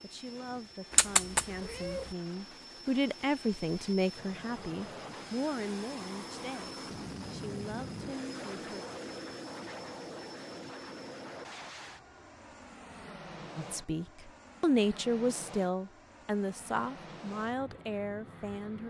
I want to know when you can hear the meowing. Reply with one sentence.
The meowing can be heard from 0.9 to 2.1 s.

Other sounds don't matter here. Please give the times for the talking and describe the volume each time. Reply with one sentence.
The talking can be heard from 0.0 to 8.8 s, getting louder then quieter; and from 13.6 to 18.8 s, getting quieter.